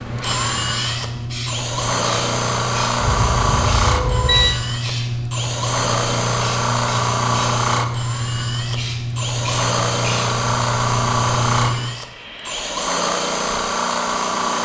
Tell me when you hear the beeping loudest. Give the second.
4 s.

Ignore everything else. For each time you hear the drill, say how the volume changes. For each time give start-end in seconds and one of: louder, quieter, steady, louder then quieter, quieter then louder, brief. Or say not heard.
0.0-14.6 steady.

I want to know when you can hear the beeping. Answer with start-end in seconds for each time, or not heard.
3.0-4.5.